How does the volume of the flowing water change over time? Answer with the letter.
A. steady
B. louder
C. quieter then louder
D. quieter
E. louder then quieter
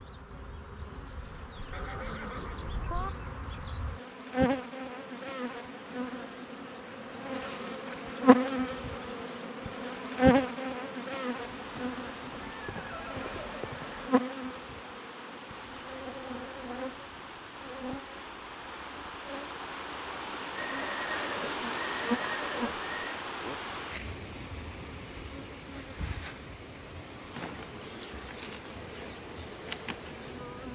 E.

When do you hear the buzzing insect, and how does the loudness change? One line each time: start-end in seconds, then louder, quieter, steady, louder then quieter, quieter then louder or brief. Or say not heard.
0.0-30.6 louder then quieter.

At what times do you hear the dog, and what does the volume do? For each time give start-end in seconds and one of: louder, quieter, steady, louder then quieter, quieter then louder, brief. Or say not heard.
not heard.